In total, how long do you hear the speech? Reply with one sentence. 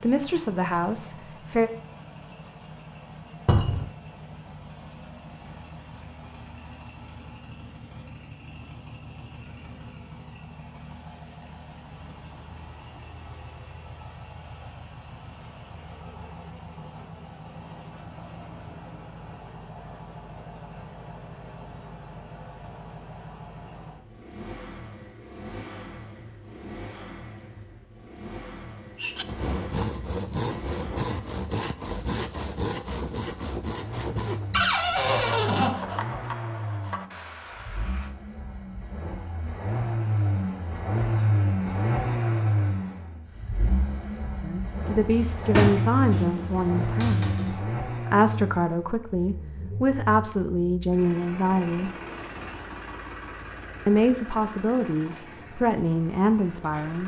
You can hear the speech for 12 seconds altogether.